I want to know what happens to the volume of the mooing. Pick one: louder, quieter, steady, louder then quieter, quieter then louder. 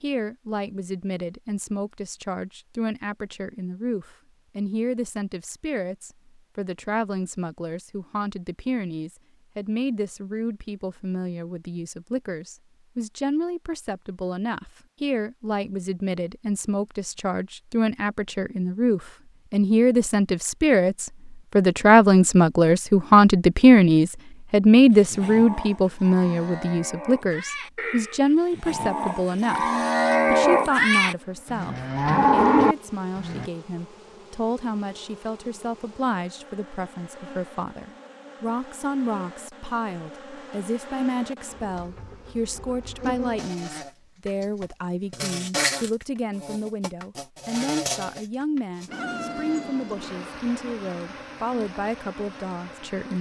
louder.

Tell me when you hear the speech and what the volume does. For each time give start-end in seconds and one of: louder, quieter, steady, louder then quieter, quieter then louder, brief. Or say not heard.
0.0-53.1 louder then quieter.